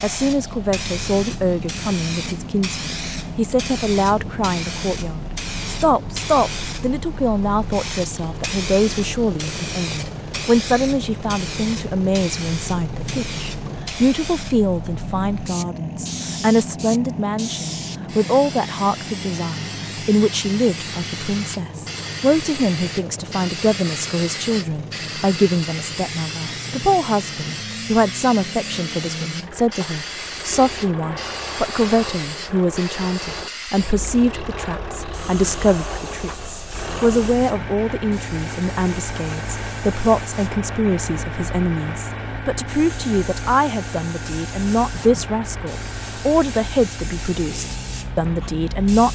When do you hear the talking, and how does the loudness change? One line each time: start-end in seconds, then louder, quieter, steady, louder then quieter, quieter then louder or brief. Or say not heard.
0.0-49.0 steady.